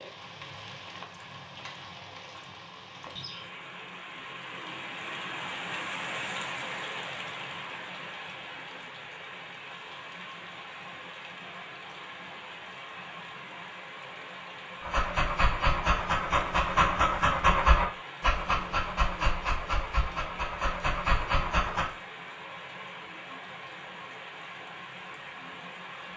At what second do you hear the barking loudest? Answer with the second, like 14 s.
18 s.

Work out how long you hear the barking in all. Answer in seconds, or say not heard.
7 s.